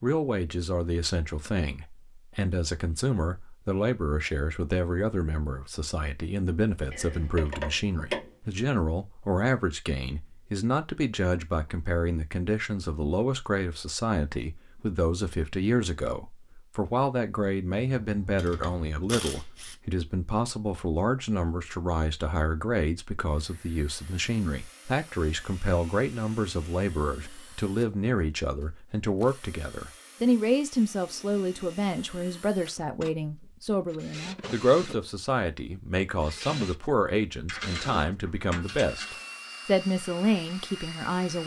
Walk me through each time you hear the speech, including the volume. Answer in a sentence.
You can hear the speech from 0.0 to 41.4 s, at a steady volume.